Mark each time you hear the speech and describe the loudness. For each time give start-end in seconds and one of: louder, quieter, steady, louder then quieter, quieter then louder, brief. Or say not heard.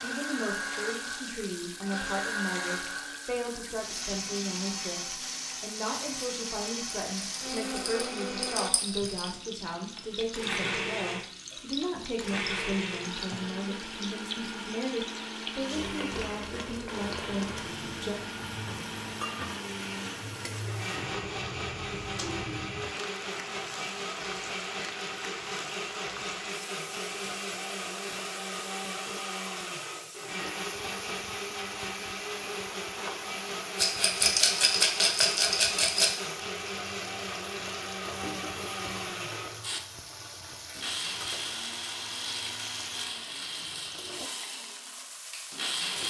0.0-18.2 steady.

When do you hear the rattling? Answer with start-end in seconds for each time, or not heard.
7.2-9.3, 33.8-36.1.